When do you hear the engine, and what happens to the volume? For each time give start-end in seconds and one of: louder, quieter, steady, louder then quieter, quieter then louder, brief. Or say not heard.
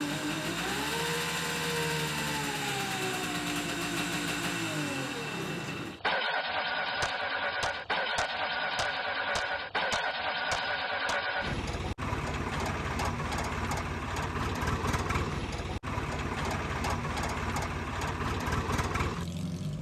0.0-19.7 steady.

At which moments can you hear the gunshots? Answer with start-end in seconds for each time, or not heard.
7.0-11.2.